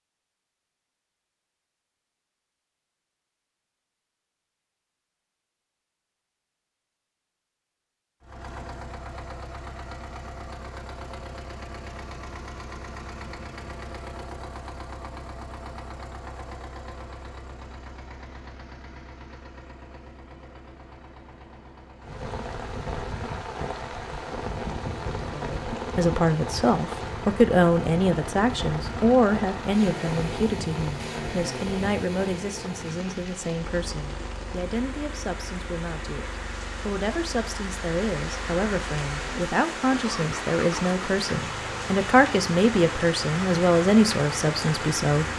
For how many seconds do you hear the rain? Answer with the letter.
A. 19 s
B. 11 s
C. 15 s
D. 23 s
D.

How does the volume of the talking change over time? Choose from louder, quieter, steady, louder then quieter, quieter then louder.
quieter then louder.